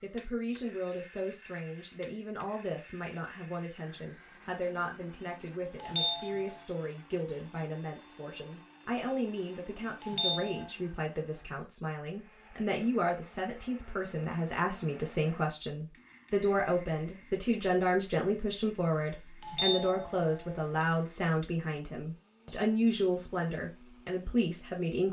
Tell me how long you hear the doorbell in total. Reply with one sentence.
You can hear the doorbell for 3 seconds altogether.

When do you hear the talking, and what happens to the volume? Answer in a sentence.
The talking can be heard from 0.0 to 25.0 s, getting louder.